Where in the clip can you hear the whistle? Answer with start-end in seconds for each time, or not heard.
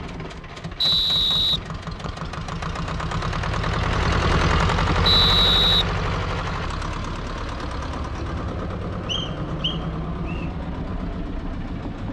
0.8-2.3, 5.0-5.8, 9.1-10.4.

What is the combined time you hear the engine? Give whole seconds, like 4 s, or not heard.
12 s.